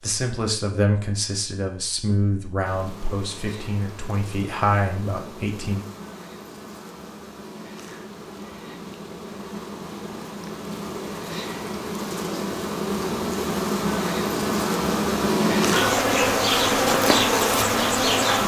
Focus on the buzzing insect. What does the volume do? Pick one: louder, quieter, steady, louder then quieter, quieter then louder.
louder.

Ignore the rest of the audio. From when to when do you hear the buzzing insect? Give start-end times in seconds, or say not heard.
2.6-18.4.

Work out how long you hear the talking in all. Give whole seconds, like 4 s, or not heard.
6 s.